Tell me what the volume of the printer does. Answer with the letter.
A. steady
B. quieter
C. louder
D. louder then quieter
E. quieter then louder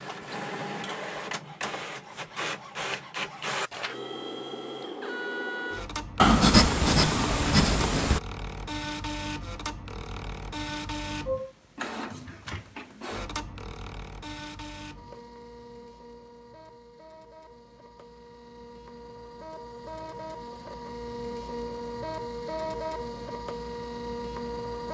E.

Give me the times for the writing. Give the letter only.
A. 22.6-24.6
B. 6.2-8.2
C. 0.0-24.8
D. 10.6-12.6
B.